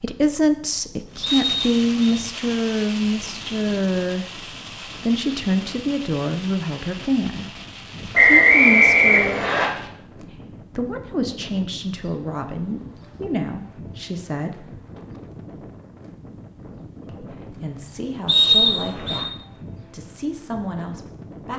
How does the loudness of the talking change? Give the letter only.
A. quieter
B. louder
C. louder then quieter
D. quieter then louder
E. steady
A.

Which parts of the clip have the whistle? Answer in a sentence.
You can hear the whistle from 1.2 to 2.2 s, from 8.2 to 9.7 s and from 18.2 to 19.2 s.